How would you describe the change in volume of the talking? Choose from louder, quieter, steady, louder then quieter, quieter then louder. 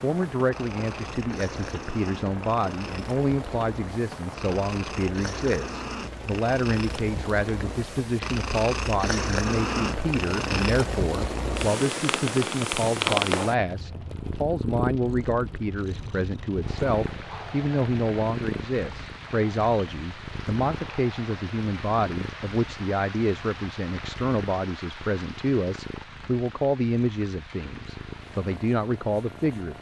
steady.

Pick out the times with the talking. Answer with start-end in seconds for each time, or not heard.
0.0-29.7.